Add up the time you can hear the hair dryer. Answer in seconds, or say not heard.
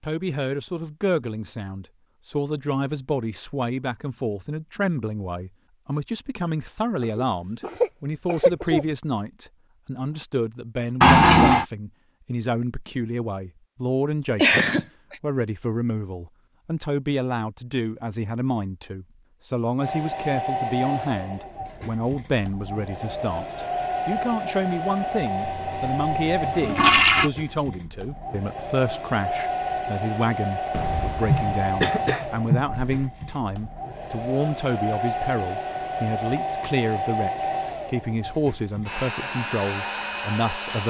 21 s.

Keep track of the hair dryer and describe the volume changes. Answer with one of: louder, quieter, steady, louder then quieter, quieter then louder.
steady.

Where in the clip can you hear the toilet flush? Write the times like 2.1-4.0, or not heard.
11.0-11.7, 25.4-27.3.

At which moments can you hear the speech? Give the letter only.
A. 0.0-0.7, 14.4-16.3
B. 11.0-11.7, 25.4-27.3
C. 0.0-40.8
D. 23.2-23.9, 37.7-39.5
C.